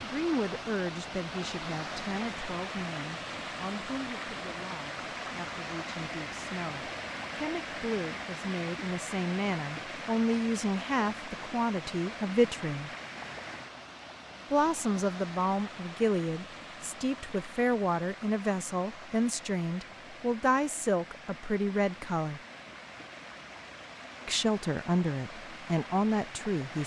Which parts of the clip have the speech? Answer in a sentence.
You can hear the speech from 0.0 to 12.9 s, from 14.5 to 22.4 s and from 24.2 to 26.8 s.